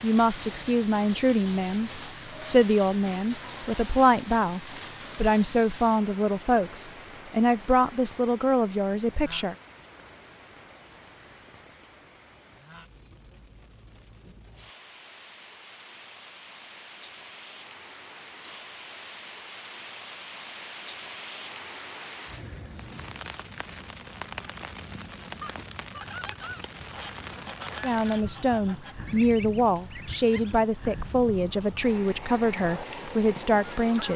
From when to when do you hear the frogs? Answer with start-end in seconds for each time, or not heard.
not heard.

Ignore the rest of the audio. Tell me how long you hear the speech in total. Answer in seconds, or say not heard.
16 s.